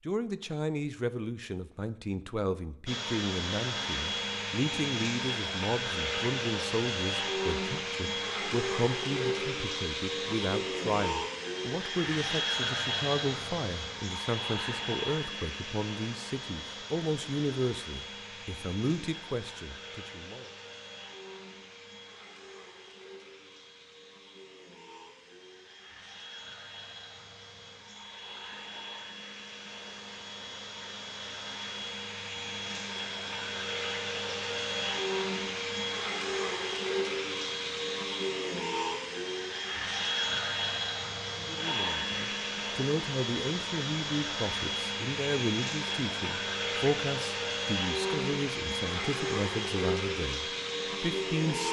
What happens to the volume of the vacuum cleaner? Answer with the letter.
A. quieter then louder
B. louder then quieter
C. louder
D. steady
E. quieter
A.